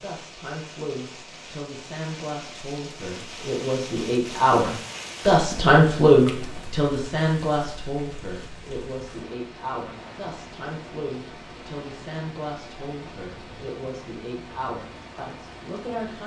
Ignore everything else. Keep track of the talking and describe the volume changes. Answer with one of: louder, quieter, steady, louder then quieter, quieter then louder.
louder then quieter.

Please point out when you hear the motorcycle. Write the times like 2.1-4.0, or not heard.
not heard.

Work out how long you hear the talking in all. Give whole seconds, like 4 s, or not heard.
16 s.